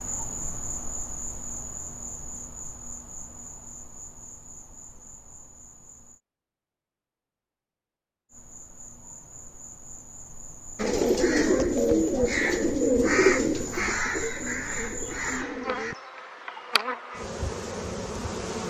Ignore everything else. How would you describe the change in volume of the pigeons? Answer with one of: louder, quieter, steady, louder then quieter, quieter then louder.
quieter.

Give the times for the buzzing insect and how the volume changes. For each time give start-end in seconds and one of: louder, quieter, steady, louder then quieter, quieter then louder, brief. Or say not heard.
0.0-6.2 quieter
8.3-18.6 louder.